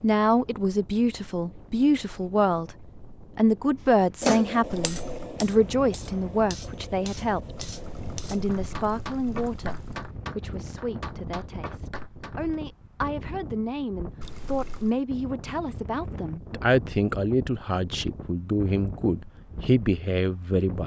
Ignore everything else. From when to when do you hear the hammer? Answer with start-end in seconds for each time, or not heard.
4.2-12.6.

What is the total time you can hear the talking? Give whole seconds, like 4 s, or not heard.
20 s.